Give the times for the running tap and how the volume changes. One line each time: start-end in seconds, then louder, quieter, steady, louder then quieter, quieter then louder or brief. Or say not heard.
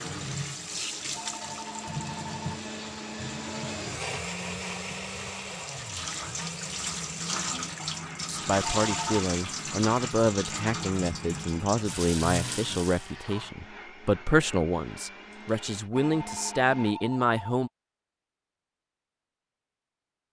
0.0-13.1 quieter then louder.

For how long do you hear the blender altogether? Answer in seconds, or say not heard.
17 s.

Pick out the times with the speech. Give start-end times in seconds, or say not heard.
8.2-17.7.